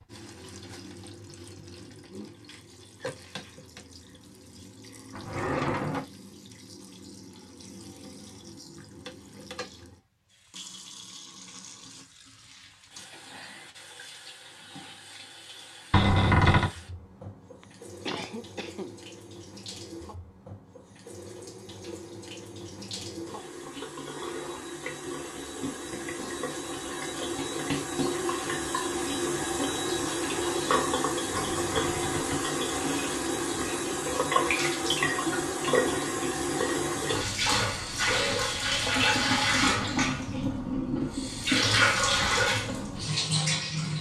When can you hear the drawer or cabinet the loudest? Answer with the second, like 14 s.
16 s.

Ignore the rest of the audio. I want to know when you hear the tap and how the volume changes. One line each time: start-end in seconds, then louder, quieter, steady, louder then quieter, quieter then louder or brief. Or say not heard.
0.0-43.9 louder.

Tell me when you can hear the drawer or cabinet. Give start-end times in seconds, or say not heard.
5.1-6.0, 15.9-16.7, 31.3-32.5.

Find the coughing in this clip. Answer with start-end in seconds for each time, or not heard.
17.6-18.9.